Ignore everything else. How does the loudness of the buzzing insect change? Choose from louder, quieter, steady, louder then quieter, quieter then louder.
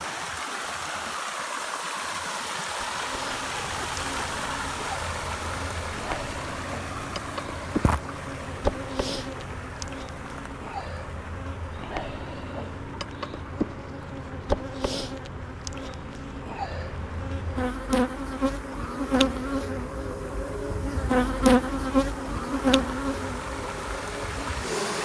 louder.